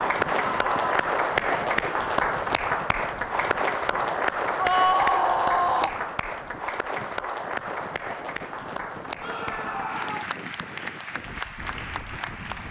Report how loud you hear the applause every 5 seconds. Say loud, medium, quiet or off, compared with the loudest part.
loud, medium, medium.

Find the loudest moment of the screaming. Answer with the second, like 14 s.
5 s.